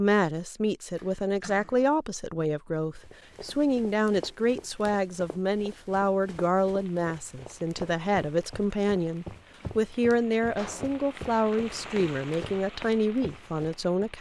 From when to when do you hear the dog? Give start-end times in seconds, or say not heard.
not heard.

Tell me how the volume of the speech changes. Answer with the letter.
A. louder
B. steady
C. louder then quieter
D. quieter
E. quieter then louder
B.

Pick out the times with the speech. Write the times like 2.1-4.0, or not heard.
0.0-14.1.